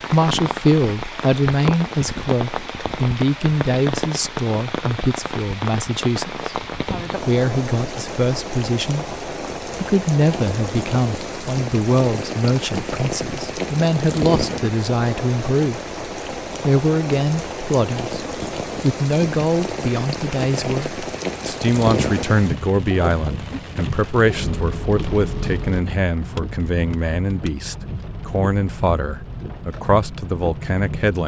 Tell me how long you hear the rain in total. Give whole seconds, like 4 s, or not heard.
31 s.